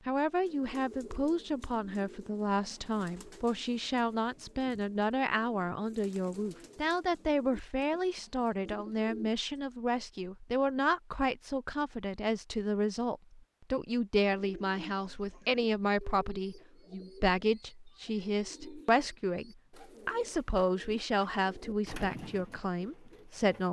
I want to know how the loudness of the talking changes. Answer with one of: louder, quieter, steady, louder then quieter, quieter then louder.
steady.